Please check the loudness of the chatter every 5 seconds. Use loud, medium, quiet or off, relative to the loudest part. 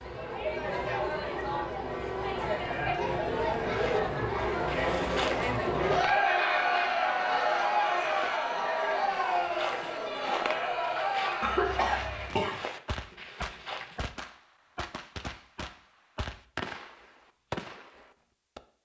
loud, loud, medium, off.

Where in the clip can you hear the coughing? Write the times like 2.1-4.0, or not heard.
11.4-12.6.